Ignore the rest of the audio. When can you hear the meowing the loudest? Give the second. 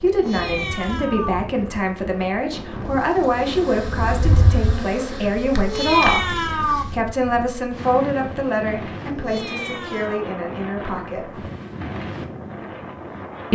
6 s.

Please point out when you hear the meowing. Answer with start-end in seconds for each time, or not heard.
0.1-1.4, 5.6-6.8, 9.1-10.2.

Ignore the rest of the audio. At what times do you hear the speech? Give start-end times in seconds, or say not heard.
0.0-11.4.